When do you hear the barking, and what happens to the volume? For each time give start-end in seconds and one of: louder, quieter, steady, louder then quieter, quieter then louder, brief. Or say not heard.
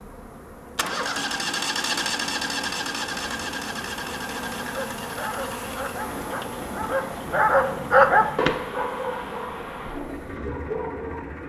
4.7-11.3 louder then quieter.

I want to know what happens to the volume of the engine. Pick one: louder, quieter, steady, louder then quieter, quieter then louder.
quieter.